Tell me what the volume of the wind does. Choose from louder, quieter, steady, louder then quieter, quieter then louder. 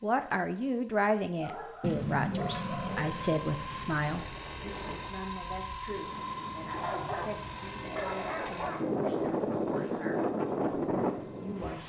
louder.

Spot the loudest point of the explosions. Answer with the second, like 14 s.
2 s.